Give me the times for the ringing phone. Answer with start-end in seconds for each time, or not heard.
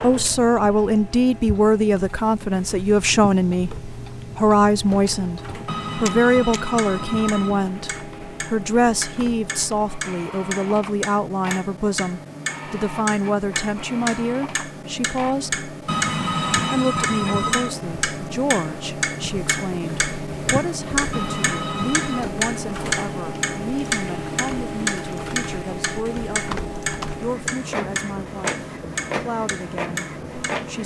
5.7-7.7, 15.8-17.8, 21.1-22.2.